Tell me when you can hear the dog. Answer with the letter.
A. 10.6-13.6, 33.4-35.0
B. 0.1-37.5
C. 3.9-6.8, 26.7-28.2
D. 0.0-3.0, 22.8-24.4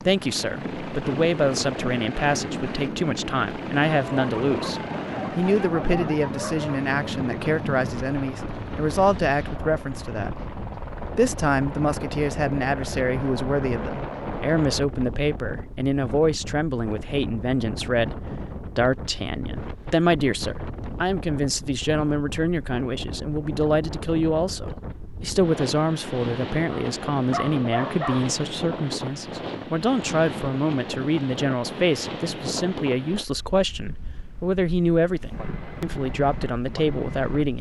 C.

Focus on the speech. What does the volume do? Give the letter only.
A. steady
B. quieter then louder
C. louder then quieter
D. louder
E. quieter
A.